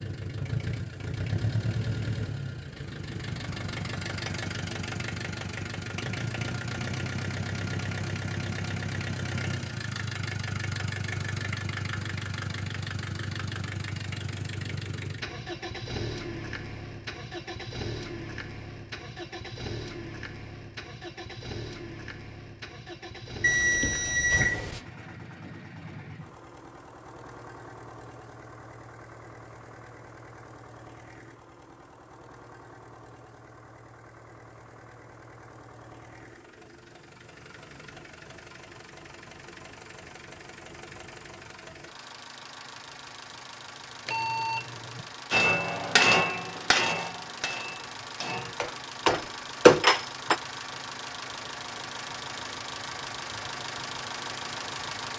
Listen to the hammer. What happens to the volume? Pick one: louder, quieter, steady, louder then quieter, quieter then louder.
quieter then louder.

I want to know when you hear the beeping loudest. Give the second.
24 s.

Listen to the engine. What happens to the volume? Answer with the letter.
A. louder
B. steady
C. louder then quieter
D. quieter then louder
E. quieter
D.